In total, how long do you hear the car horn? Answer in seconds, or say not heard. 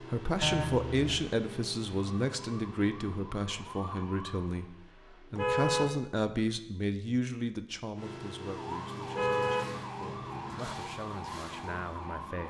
3 s.